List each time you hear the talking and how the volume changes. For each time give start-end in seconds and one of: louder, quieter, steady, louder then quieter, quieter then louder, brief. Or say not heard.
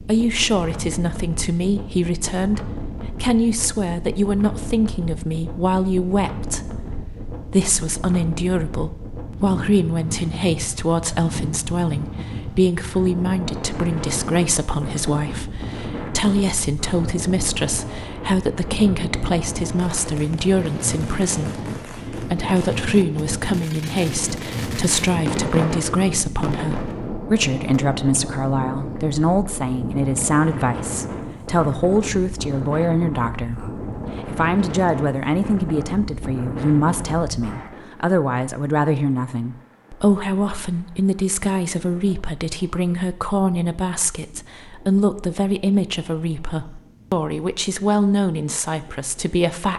0.1-49.7 steady.